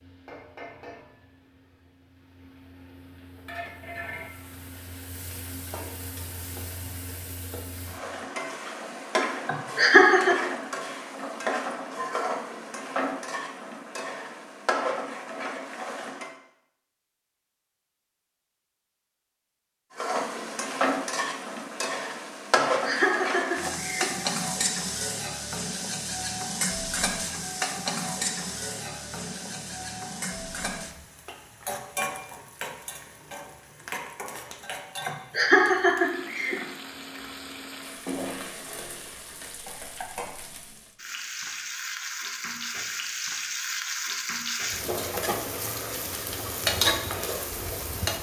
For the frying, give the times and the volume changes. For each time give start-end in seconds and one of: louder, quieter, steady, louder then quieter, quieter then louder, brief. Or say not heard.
0.0-16.4 louder
19.9-48.1 quieter then louder.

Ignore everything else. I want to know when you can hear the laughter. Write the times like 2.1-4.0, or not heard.
9.4-10.3, 22.6-24.2, 35.0-36.5.